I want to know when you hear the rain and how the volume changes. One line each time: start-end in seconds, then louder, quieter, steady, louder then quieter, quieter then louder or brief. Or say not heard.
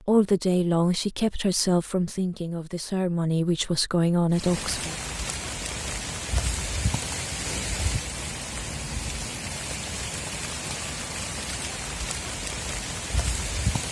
4.3-13.8 steady.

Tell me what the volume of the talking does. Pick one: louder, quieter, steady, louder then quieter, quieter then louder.
quieter then louder.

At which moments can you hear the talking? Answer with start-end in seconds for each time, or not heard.
0.1-5.0.